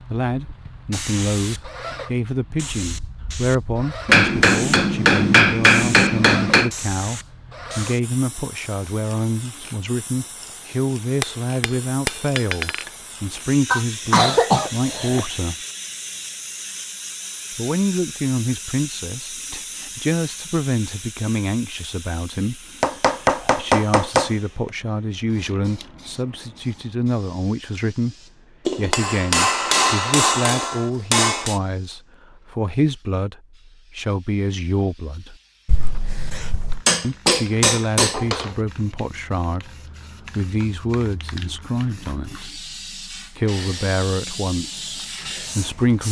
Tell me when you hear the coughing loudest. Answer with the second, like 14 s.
14 s.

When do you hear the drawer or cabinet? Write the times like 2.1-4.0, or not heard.
not heard.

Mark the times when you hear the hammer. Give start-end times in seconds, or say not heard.
4.0-6.7, 11.2-12.9, 22.8-24.3, 28.6-31.6, 36.9-38.5.